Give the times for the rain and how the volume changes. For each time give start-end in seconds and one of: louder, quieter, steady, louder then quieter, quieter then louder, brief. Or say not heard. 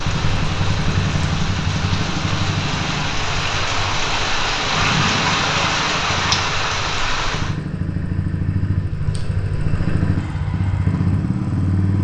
0.0-7.5 louder.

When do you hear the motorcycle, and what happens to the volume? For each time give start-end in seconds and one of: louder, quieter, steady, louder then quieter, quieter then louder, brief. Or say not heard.
0.0-11.9 quieter then louder.